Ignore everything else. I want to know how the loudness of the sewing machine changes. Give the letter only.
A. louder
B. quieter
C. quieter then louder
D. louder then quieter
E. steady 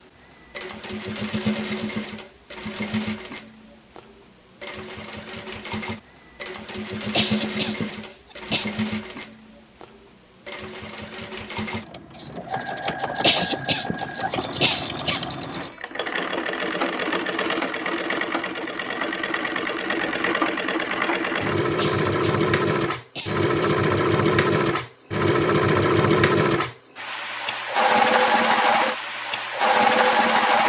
A.